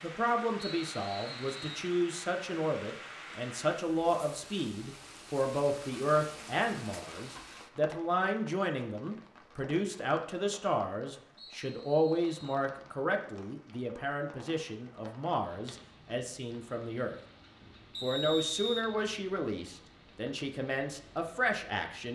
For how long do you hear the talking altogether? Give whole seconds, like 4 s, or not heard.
21 s.